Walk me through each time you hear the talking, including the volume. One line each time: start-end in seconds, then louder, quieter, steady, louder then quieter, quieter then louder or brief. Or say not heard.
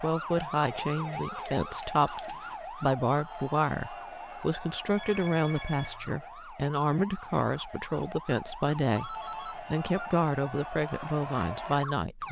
0.0-12.2 steady.